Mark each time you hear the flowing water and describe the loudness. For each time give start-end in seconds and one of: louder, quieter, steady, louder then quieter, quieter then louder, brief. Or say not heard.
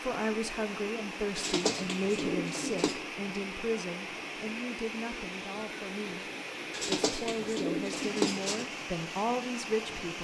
0.0-10.1 steady.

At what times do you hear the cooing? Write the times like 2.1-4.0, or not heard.
1.4-3.0, 6.7-8.7.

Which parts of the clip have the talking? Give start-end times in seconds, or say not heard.
0.0-6.2, 6.8-10.1.